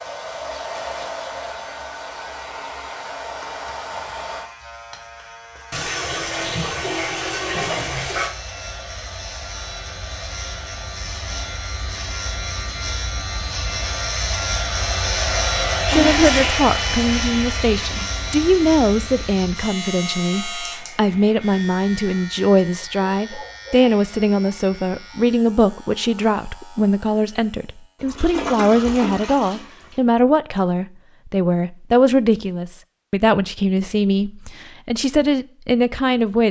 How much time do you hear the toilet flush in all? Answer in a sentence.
The toilet flush can be heard for 5 seconds in total.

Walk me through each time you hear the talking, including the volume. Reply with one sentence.
You can hear the talking from 15.8 to 36.4 s, at a steady volume.